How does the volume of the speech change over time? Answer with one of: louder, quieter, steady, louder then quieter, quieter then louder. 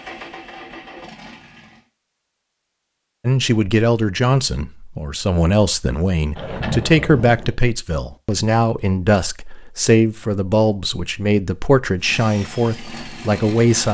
steady.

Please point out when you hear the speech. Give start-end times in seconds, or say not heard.
3.2-13.9.